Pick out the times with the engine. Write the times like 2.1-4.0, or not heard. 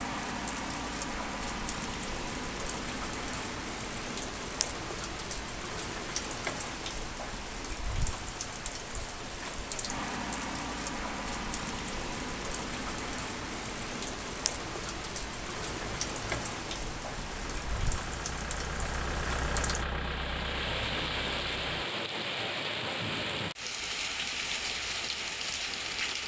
15.7-21.8.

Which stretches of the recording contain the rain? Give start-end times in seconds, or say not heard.
0.0-26.2.